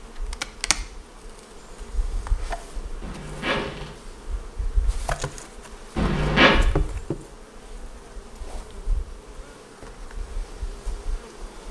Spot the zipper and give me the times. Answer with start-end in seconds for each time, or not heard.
3.0-3.9, 6.0-6.5.